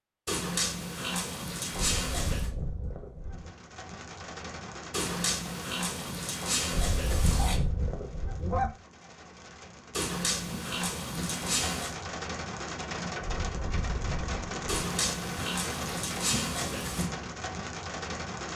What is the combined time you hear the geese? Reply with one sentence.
The geese can be heard for 5 seconds in total.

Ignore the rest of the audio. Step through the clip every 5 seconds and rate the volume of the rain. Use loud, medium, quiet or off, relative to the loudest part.
medium, medium, loud, loud.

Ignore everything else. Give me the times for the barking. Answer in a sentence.
You can hear the barking from 0.2 to 2.5 s, from 4.9 to 7.6 s, from 9.9 to 11.9 s and from 14.7 to 17.1 s.